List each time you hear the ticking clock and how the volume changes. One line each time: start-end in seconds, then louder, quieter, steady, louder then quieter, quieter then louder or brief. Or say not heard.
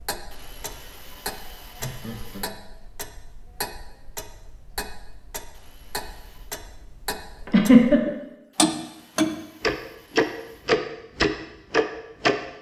0.0-12.3 louder.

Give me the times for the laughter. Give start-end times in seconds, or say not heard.
1.8-2.5, 7.5-8.0.